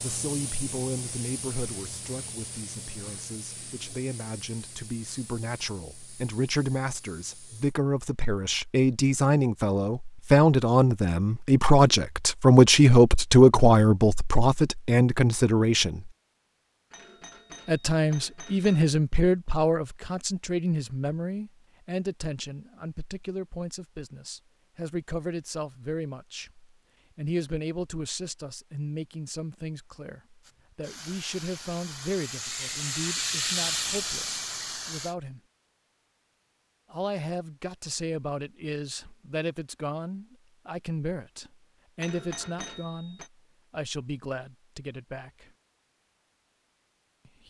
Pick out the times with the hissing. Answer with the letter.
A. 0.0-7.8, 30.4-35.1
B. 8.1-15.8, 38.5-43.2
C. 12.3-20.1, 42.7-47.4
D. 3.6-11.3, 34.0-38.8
A.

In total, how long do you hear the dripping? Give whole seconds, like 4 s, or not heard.
not heard.